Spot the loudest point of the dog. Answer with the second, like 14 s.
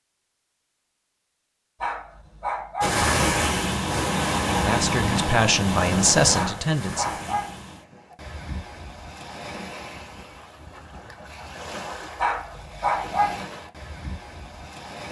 13 s.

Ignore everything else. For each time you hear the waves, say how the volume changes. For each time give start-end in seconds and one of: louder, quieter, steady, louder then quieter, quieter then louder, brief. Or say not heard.
2.8-15.0 quieter.